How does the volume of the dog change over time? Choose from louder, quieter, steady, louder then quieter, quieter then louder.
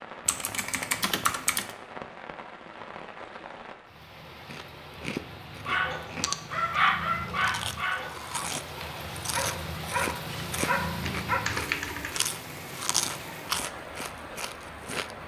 quieter then louder.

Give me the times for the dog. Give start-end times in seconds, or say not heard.
5.7-11.4.